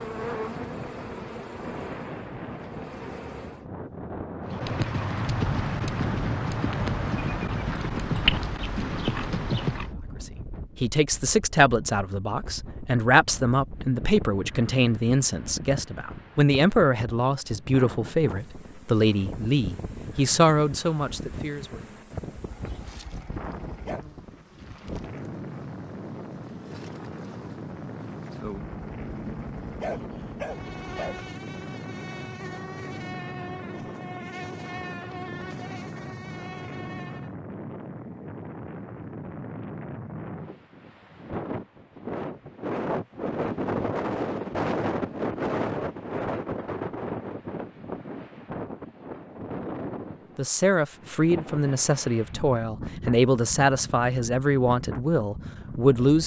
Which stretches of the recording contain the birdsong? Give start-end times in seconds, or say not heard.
not heard.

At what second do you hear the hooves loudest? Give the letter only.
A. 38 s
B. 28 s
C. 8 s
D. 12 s
C.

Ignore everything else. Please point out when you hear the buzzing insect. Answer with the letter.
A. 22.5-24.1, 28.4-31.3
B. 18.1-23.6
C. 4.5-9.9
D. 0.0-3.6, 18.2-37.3
D.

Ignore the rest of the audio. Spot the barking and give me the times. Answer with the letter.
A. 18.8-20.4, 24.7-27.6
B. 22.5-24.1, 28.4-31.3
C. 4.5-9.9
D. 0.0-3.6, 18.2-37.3
B.